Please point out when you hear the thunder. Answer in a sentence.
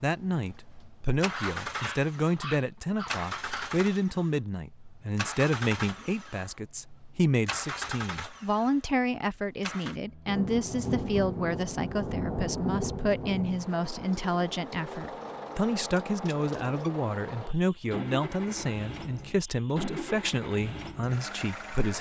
The thunder can be heard from 10.2 to 13.6 s.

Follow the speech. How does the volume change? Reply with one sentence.
The volume of the speech stays about the same.